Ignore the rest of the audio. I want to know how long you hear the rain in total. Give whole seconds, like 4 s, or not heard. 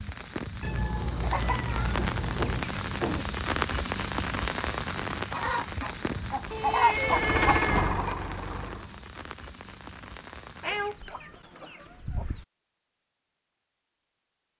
11 s.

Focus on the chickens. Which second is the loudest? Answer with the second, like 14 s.
7 s.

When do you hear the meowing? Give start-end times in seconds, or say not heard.
0.6-2.6, 6.5-8.0, 10.6-11.9.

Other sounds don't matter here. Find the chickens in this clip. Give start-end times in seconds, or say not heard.
1.2-3.2, 5.3-8.2, 10.7-12.4.